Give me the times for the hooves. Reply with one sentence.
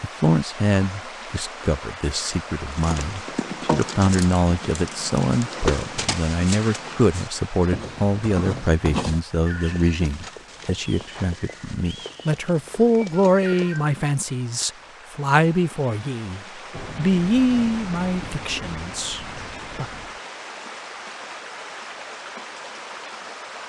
You can hear the hooves from 2.7 to 13.9 s.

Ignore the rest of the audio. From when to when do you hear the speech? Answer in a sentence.
The speech can be heard from 0.0 to 19.9 s.